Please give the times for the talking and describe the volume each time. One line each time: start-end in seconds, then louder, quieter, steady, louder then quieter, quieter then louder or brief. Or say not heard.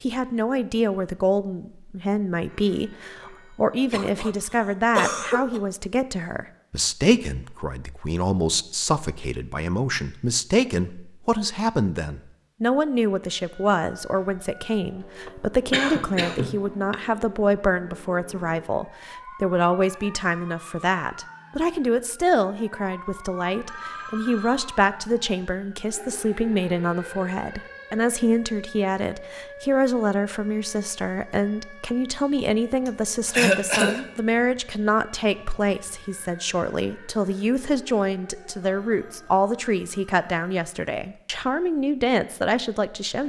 0.0-43.2 steady.